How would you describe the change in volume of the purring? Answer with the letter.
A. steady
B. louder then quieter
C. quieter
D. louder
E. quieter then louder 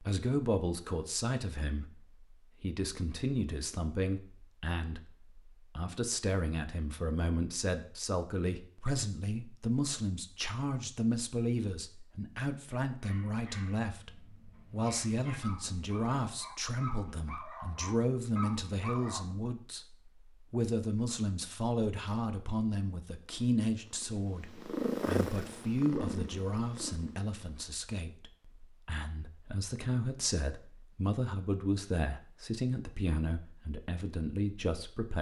B.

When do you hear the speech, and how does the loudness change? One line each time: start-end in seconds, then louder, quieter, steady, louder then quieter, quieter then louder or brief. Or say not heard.
0.0-35.1 steady.